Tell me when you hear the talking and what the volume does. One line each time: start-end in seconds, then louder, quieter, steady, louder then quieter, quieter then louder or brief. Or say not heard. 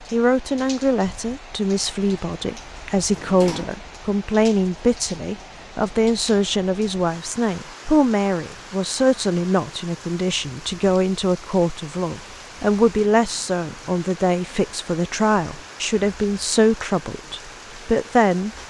0.1-18.5 steady.